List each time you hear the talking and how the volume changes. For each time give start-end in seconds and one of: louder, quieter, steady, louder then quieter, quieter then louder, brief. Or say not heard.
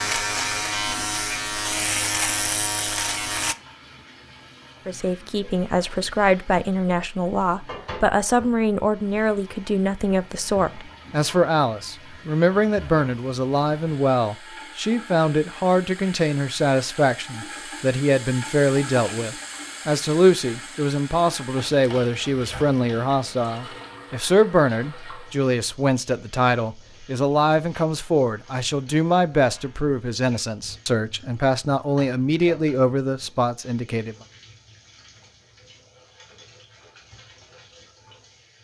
4.8-34.1 steady.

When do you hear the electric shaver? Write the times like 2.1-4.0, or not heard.
0.0-3.5.